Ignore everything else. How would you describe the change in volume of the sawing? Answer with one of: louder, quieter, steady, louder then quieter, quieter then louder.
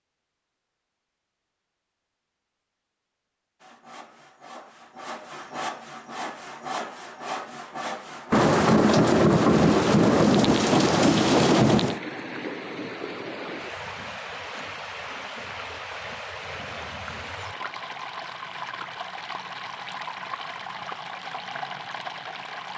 louder.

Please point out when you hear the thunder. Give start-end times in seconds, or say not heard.
8.3-12.0.